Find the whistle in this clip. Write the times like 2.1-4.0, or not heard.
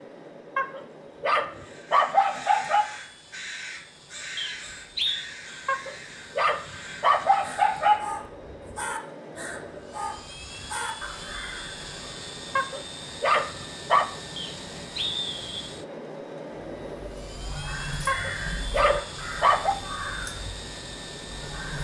4.3-5.2, 14.3-15.7.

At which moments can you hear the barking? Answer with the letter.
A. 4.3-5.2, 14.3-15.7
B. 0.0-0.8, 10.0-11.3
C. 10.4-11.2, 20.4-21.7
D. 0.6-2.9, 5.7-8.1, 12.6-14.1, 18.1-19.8
D.